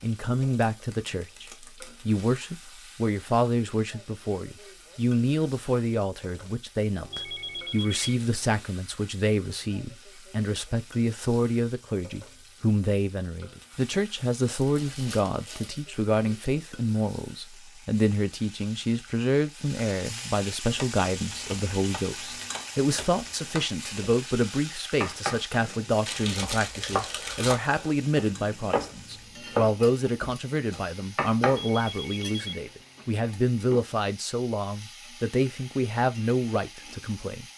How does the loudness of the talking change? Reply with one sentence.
The volume of the talking stays about the same.